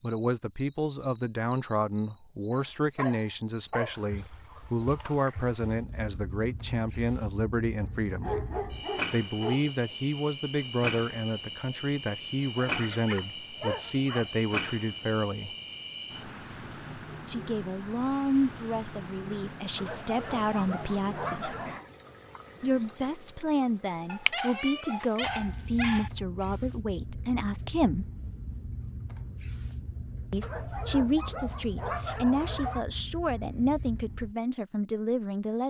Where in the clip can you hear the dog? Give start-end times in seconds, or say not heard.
2.5-4.0, 8.2-9.7, 12.6-14.3, 19.8-21.8, 24.1-26.1, 30.4-32.9.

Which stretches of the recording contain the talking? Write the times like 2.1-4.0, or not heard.
0.0-8.4, 9.1-15.6, 17.2-21.6, 22.6-28.1, 30.3-35.6.